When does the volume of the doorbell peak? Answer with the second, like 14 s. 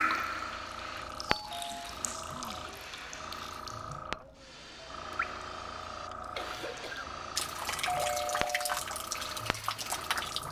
8 s.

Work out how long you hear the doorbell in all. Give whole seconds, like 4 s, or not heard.
2 s.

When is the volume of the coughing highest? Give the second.
7 s.